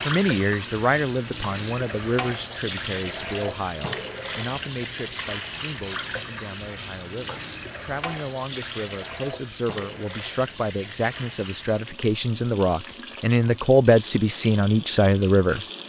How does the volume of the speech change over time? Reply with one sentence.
The loudness of the speech goes down, then up.